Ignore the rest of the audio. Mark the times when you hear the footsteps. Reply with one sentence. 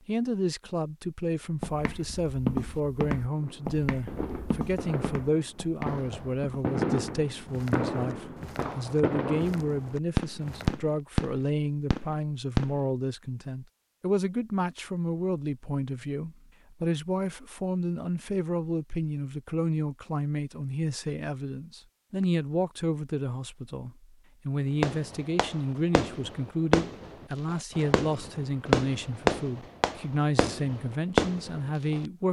You can hear the footsteps from 1.6 to 10.8 s.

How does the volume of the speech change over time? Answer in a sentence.
The volume of the speech stays about the same.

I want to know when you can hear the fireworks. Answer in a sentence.
You can hear the fireworks from 3.3 to 12.8 s and from 24.8 to 32.0 s.